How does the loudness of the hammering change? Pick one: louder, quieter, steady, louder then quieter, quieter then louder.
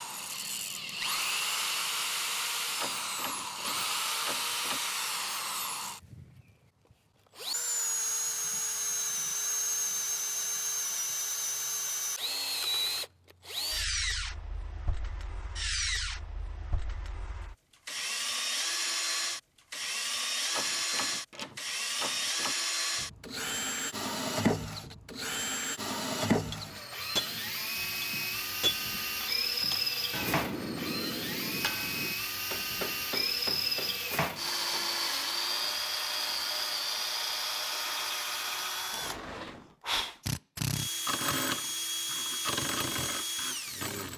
quieter.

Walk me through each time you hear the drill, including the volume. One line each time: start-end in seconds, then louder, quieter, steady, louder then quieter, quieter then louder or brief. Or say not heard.
0.0-6.4 steady
7.3-44.1 steady.